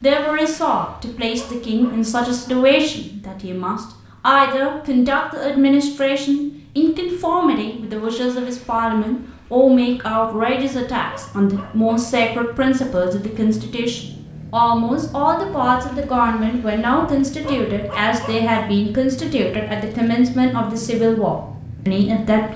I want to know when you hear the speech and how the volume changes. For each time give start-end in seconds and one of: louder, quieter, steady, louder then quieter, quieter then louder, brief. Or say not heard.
0.0-22.5 steady.